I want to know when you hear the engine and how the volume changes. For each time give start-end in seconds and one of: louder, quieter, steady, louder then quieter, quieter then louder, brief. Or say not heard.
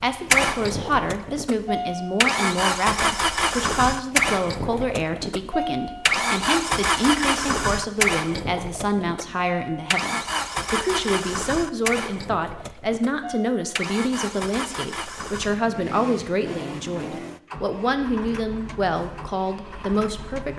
0.0-20.5 quieter.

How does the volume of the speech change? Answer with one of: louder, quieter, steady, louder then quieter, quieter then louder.
steady.